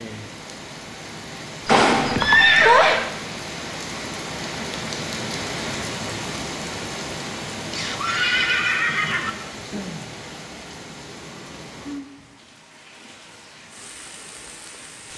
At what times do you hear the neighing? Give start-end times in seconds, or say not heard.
1.6-3.0, 7.7-9.3.